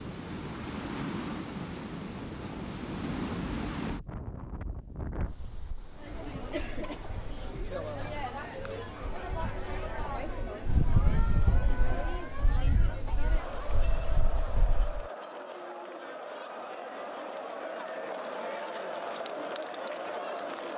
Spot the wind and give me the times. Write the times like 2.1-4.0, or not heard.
0.0-15.1.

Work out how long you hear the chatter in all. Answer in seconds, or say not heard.
15 s.